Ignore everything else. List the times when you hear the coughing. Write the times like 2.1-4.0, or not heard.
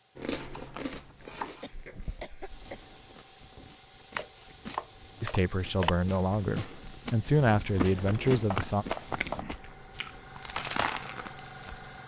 1.6-2.9.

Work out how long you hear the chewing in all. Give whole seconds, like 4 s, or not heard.
12 s.